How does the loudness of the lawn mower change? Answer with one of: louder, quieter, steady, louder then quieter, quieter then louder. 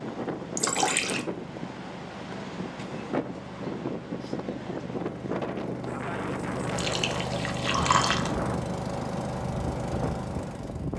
louder.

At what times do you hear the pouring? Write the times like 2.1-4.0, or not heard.
0.6-1.2, 6.8-8.3.